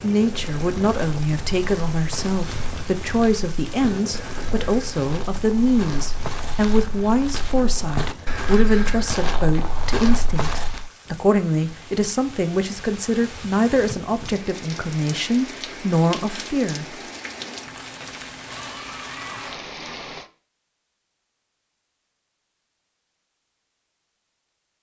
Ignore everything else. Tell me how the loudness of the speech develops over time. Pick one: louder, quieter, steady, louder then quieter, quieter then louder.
steady.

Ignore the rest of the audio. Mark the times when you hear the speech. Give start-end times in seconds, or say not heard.
0.0-16.9.